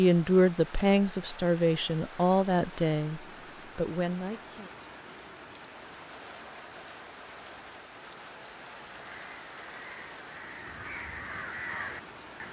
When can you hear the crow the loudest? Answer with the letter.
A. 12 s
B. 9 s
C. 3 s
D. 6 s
A.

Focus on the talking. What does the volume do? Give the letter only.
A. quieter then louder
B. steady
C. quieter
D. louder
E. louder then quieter
C.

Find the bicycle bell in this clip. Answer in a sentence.
The bicycle bell can't be heard in this clip.